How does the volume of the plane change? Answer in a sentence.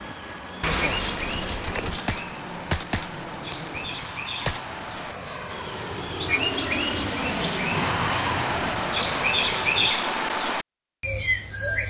The volume of the plane goes up.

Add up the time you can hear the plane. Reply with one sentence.
You can hear the plane for 10 seconds altogether.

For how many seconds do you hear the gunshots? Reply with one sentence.
You can hear the gunshots for 4 seconds altogether.